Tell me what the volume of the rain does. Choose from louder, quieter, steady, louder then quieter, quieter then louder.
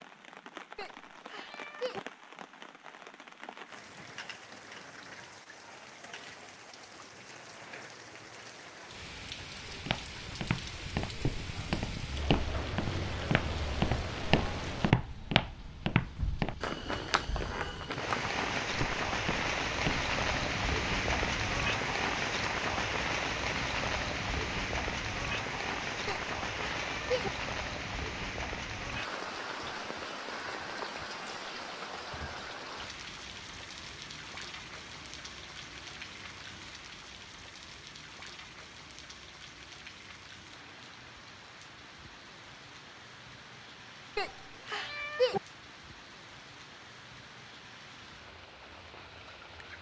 louder then quieter.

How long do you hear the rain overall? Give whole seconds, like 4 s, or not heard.
50 s.